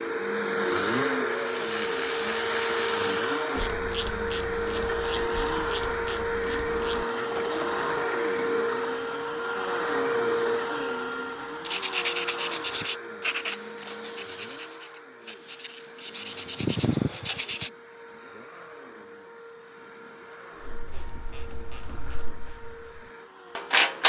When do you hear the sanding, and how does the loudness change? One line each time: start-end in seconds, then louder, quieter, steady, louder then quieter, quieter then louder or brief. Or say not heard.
11.6-17.7 quieter then louder.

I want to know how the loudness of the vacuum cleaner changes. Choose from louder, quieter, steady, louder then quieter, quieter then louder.
quieter.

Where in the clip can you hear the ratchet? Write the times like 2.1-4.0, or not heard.
1.2-8.4, 20.6-24.0.